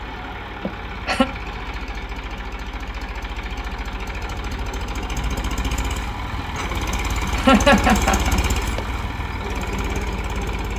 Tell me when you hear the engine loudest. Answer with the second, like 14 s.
8 s.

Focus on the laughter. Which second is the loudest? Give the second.
8 s.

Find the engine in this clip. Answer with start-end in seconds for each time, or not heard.
0.0-10.7.